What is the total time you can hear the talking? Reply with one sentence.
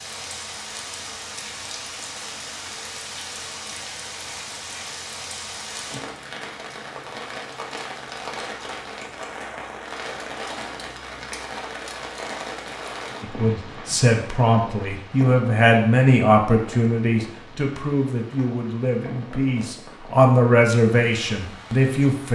The talking can be heard for 9 seconds in total.